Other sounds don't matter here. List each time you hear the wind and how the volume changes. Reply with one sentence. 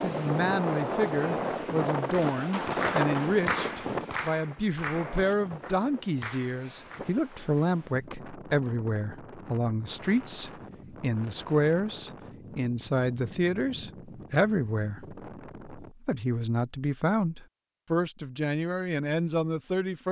You can hear the wind from 0.0 to 15.9 s, getting quieter.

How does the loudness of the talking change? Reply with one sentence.
The loudness of the talking stays about the same.